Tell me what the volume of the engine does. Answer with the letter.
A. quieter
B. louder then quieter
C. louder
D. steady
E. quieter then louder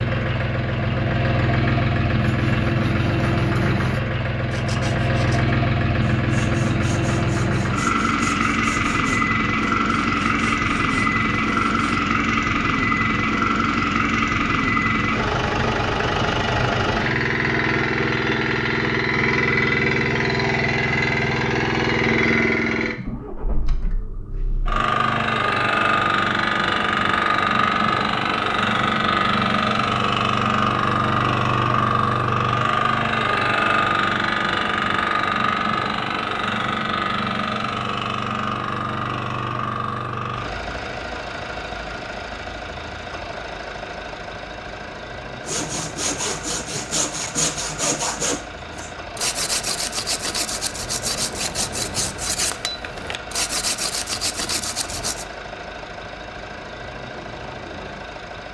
A.